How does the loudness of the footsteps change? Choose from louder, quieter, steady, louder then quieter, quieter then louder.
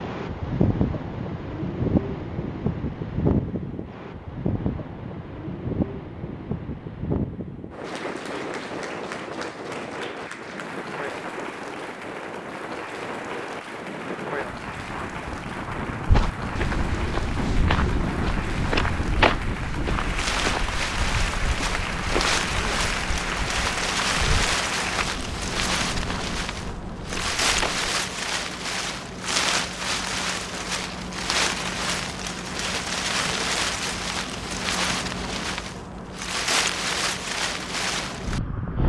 quieter.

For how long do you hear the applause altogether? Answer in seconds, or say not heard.
17 s.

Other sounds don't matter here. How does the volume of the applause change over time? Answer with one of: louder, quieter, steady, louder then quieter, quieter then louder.
louder.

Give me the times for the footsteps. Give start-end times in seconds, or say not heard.
16.1-27.9.